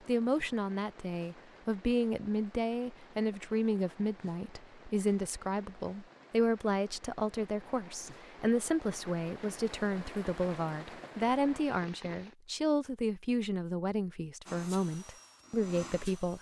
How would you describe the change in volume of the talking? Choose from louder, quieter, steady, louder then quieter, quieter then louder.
steady.